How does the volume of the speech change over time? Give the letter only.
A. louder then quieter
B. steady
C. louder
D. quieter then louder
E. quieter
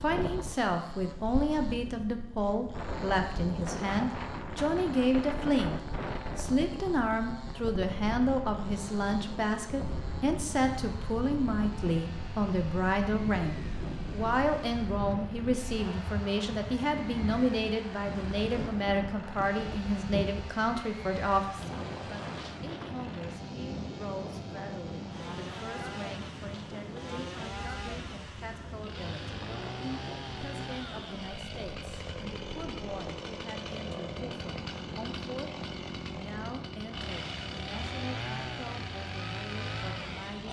E.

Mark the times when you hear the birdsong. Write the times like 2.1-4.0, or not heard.
not heard.